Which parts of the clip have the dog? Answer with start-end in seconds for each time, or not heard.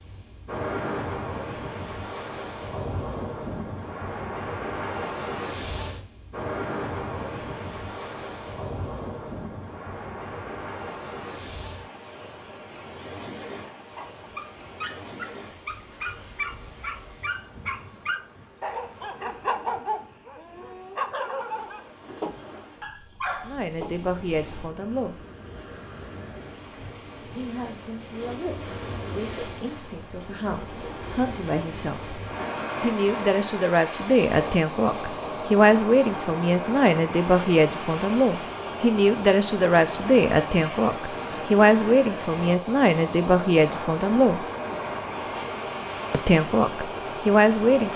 13.9-24.0.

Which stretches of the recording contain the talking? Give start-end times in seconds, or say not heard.
23.4-25.1, 27.3-32.1, 32.8-44.4, 46.1-47.9.